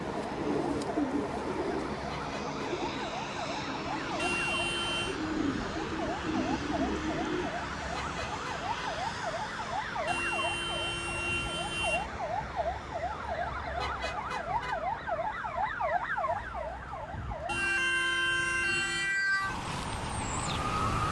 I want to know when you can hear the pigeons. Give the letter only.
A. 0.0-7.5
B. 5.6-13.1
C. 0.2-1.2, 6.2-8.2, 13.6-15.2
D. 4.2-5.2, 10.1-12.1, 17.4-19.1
A.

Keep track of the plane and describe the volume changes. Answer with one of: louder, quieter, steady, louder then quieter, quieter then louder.
quieter.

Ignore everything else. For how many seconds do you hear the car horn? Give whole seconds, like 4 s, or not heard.
5 s.